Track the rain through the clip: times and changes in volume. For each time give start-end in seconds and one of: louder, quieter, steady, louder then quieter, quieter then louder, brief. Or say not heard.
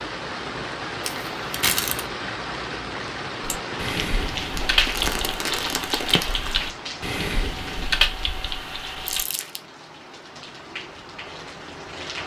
0.0-12.2 quieter.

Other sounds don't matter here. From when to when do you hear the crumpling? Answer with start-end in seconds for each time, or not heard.
1.0-2.0, 4.5-6.6, 9.1-9.6.